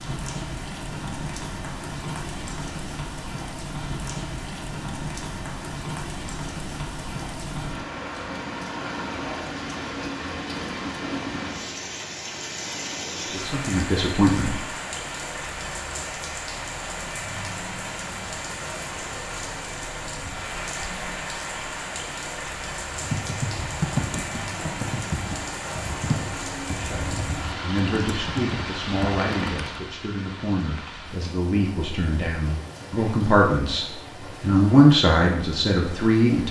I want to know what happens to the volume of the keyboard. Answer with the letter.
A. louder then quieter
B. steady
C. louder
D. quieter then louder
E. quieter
E.